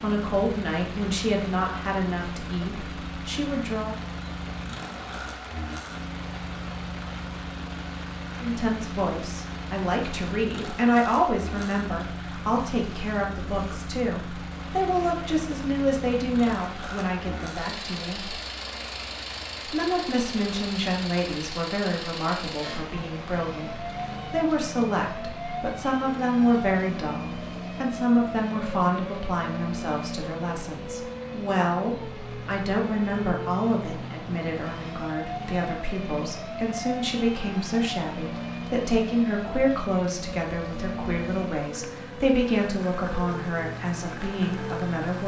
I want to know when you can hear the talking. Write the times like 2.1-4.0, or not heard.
0.0-4.0, 8.4-18.4, 19.6-45.2.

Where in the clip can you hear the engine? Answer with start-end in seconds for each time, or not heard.
0.0-45.2.